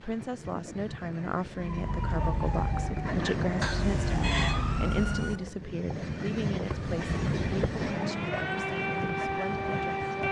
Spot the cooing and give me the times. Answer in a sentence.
The cooing can't be heard in this clip.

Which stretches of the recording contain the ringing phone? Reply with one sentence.
You can hear the ringing phone from 3.6 to 4.6 s.